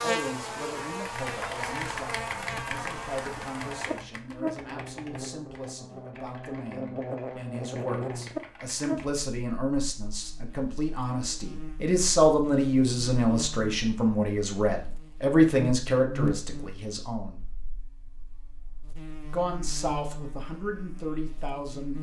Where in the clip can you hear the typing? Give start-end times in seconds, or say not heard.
1.1-9.2.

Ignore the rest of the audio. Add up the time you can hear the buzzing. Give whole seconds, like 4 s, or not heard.
22 s.